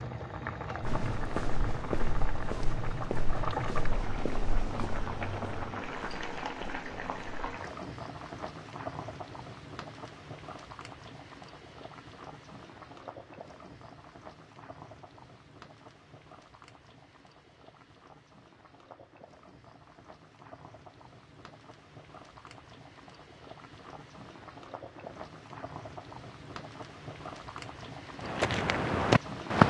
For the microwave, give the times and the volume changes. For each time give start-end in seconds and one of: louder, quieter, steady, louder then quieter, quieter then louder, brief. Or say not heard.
not heard.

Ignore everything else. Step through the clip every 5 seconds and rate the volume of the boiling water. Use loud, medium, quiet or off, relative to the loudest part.
loud, loud, medium, quiet, quiet, medium.